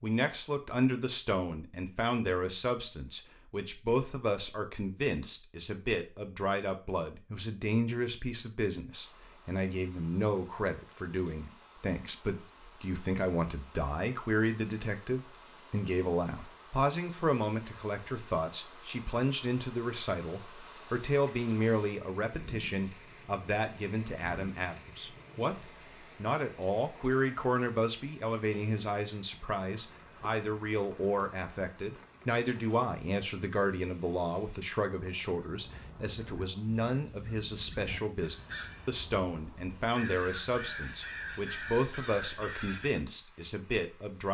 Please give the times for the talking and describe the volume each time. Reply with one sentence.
You can hear the talking from 0.0 to 44.2 s, at a steady volume.